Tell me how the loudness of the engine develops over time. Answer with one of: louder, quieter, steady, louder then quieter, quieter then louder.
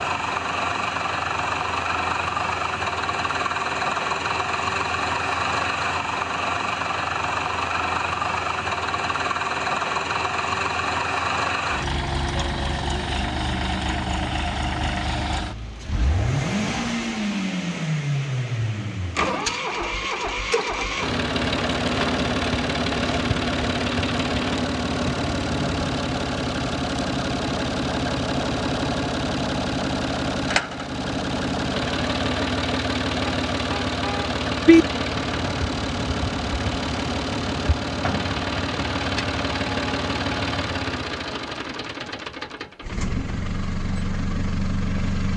steady.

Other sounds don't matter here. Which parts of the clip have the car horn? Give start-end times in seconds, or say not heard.
33.2-34.9.